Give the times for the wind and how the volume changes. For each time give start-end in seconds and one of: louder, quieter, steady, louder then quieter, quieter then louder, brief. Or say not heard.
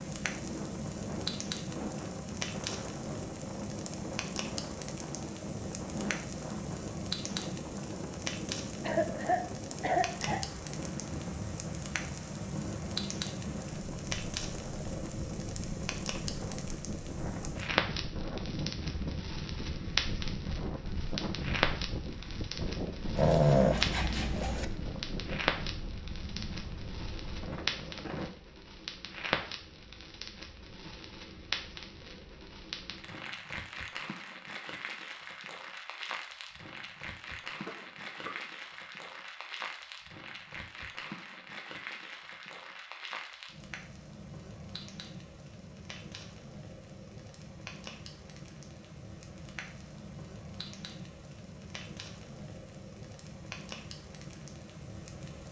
0.0-28.3 steady.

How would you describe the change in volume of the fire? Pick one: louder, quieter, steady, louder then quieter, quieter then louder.
quieter.